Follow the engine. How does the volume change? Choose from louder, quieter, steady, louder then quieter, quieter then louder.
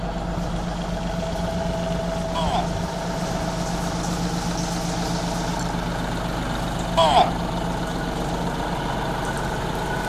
steady.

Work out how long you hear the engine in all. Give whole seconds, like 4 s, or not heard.
10 s.